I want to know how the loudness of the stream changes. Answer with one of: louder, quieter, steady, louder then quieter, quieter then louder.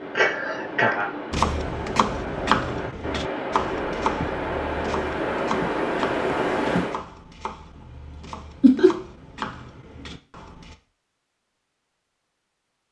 louder.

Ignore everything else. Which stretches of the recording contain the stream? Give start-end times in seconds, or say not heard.
0.0-7.0.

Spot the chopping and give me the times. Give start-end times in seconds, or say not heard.
1.3-10.8.